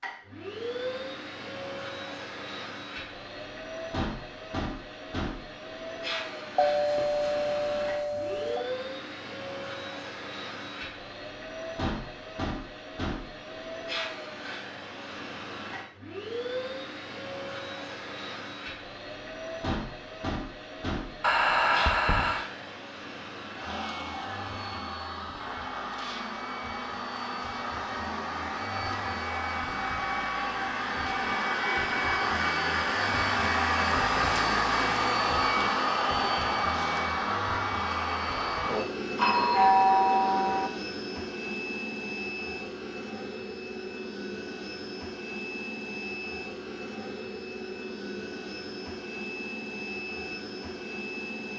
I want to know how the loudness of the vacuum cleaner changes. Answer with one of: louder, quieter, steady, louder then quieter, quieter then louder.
louder then quieter.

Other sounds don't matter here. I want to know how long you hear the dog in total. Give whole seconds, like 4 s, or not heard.
not heard.